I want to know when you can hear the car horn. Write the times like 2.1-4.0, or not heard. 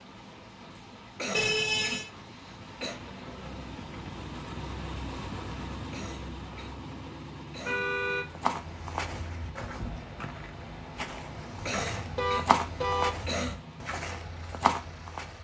1.3-2.1, 7.7-8.2, 11.2-13.1.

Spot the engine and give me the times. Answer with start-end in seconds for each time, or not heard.
0.0-15.3.